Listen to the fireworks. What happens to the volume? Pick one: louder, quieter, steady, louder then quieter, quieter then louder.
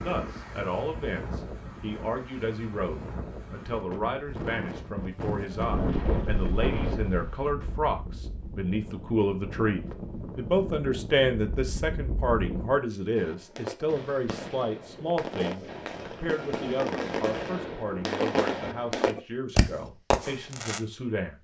louder.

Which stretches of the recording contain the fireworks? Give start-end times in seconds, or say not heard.
13.2-20.8.